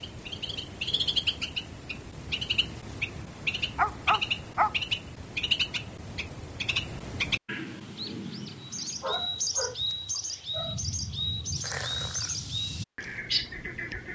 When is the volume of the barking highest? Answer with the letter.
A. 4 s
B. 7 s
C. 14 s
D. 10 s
A.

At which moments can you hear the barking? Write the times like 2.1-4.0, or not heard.
3.1-4.8, 9.0-10.8.